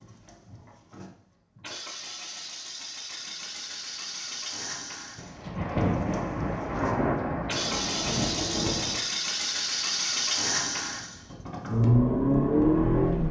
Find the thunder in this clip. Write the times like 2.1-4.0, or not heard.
5.2-9.0.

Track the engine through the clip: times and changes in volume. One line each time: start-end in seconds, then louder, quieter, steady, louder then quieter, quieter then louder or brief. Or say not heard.
0.0-13.2 louder.